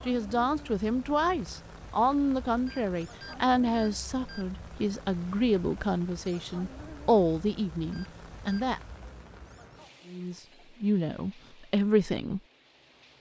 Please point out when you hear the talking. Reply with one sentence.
The talking can be heard from 0.1 to 8.8 s and from 10.1 to 12.4 s.